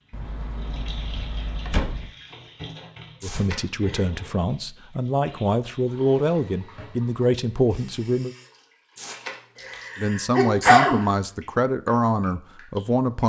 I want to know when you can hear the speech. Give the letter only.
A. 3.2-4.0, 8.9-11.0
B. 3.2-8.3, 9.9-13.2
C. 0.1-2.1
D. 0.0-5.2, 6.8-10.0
B.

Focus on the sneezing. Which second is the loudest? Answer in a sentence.
The volume of the sneezing peaks at 11 seconds.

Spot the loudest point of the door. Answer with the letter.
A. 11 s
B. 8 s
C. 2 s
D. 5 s
C.